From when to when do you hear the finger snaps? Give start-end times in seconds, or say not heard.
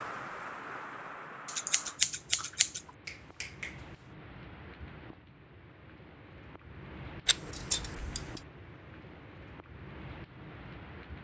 3.0-4.0.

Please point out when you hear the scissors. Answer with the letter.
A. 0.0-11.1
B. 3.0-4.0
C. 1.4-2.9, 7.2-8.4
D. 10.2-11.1
C.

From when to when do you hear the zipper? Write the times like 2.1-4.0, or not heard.
not heard.